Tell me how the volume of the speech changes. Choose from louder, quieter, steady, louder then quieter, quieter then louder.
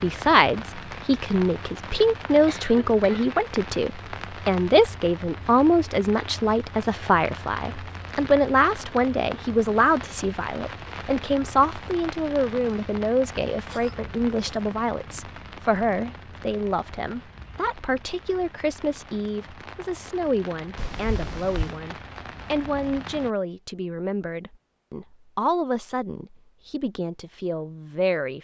quieter.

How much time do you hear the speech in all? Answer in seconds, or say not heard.
28 s.